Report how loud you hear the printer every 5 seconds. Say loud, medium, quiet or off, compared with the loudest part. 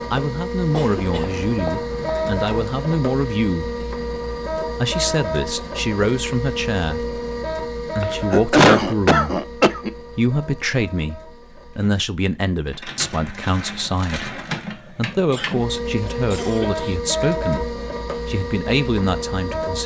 loud, loud, medium, loud.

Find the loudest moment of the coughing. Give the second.
9 s.